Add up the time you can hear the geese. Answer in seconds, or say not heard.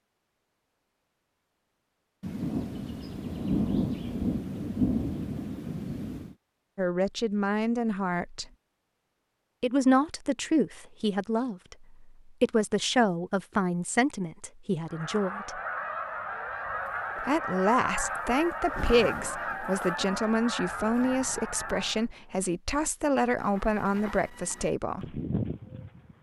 7 s.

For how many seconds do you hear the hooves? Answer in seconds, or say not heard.
3 s.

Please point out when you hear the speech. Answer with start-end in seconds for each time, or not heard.
6.8-8.4, 9.6-15.6, 17.2-25.2.